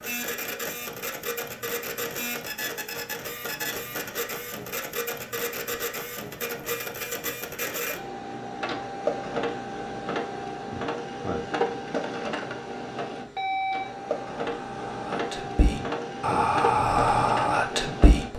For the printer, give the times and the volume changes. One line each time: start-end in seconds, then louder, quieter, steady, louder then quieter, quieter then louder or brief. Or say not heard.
0.0-18.3 steady.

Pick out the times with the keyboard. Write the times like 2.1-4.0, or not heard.
not heard.